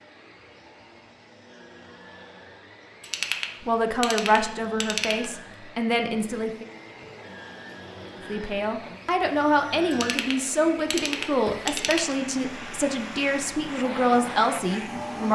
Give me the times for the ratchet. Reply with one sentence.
The ratchet can be heard from 3.0 to 5.2 s and from 9.9 to 12.2 s.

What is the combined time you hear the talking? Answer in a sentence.
The talking can be heard for 10 seconds in total.